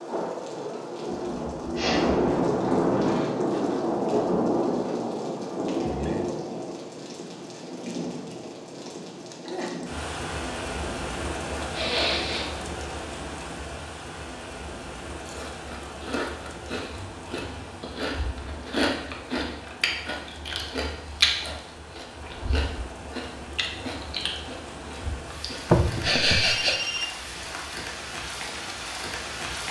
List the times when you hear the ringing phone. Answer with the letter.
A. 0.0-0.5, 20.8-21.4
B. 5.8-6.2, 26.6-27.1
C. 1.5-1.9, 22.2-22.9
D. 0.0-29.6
B.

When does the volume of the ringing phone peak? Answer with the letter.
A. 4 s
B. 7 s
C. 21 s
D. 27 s
D.